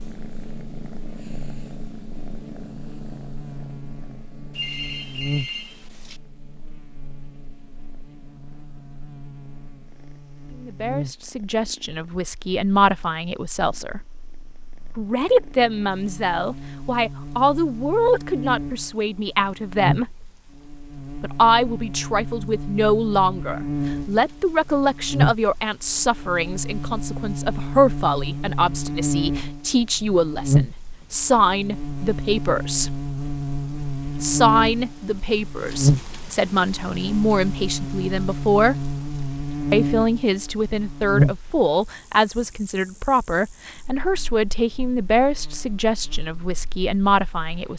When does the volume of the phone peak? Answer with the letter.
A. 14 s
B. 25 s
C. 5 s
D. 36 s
C.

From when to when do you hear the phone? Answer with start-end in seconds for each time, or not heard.
4.5-6.2.